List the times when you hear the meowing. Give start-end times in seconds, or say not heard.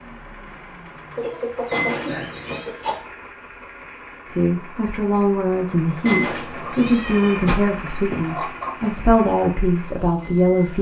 1.7-2.7, 6.0-7.5.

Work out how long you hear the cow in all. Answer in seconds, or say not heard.
not heard.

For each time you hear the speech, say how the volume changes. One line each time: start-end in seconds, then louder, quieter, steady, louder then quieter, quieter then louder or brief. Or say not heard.
4.2-10.7 steady.